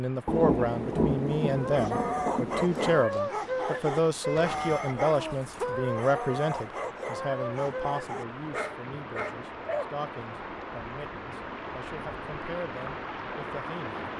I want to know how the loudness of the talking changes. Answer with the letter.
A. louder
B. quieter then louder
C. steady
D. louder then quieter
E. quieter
E.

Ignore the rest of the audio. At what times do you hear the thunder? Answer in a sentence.
The thunder can be heard from 0.2 to 3.0 s.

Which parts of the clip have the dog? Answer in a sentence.
The dog can be heard from 1.4 to 9.9 s.